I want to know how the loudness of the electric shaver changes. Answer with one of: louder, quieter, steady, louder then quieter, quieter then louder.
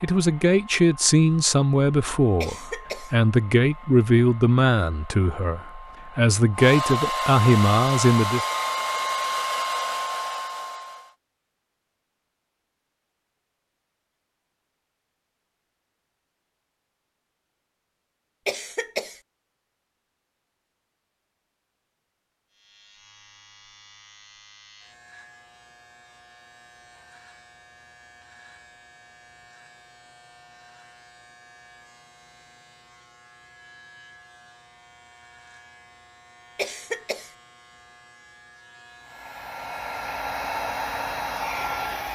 steady.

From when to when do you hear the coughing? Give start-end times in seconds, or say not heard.
2.4-3.1, 18.4-19.2, 36.5-37.3.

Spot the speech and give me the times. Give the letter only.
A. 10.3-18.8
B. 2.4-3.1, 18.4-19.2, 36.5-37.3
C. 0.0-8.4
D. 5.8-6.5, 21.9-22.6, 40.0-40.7
C.